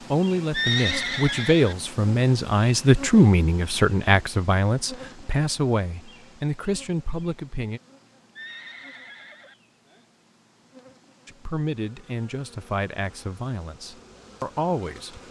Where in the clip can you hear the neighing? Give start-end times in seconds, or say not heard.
0.5-1.8, 8.3-9.6.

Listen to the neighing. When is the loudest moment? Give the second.
1 s.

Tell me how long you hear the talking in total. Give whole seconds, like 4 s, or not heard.
12 s.